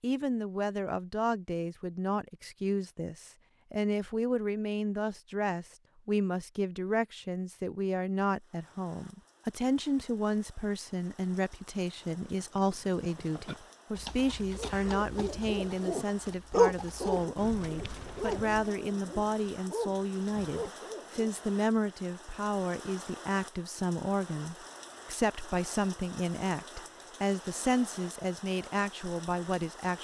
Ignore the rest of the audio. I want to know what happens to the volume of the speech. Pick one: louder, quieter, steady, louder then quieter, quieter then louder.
steady.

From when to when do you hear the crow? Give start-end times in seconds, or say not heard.
not heard.